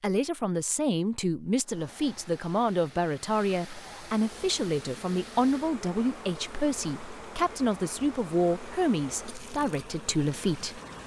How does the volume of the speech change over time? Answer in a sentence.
The loudness of the speech stays about the same.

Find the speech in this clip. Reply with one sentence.
The speech can be heard from 0.0 to 10.8 s.